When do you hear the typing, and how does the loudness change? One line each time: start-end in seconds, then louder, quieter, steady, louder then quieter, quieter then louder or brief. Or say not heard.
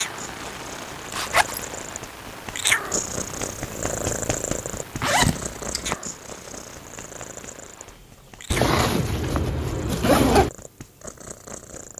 not heard.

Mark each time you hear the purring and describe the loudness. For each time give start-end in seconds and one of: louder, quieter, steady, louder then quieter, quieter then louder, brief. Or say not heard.
0.0-11.9 louder then quieter.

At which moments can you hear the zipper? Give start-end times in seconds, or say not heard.
1.1-1.6, 5.0-6.0, 8.5-10.5.